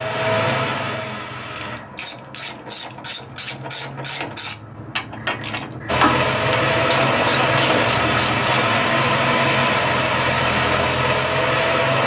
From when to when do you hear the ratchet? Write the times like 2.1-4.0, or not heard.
1.5-8.7.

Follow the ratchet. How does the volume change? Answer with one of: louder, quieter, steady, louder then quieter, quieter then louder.
louder.